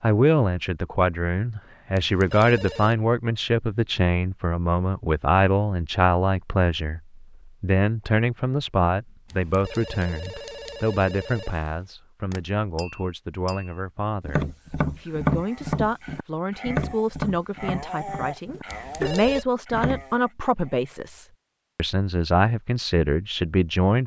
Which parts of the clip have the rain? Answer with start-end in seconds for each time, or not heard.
not heard.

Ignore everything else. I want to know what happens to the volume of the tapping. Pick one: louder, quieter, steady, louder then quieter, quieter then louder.
louder then quieter.